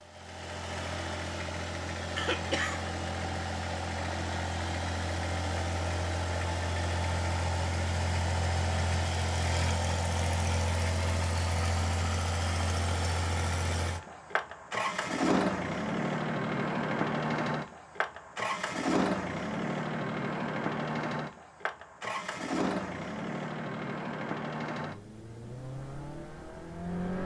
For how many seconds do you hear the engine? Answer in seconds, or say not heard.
27 s.